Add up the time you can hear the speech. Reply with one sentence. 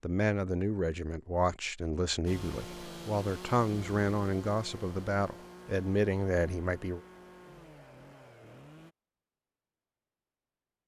You can hear the speech for 7 seconds altogether.